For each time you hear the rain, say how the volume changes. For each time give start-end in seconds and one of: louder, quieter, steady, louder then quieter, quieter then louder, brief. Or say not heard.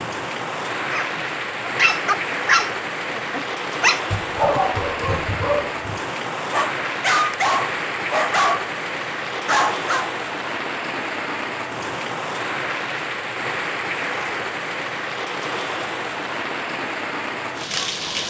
0.0-18.2 steady.